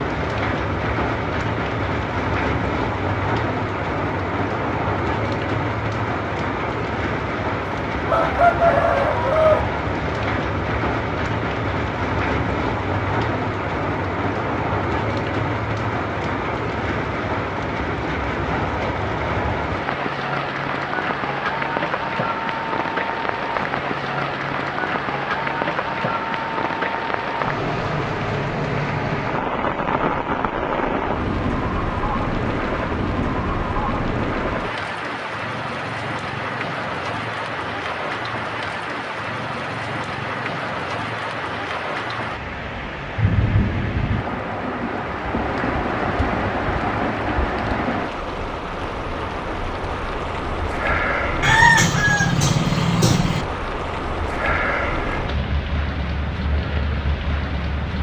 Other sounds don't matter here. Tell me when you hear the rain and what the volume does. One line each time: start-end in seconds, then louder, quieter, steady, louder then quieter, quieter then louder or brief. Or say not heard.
0.0-57.9 steady.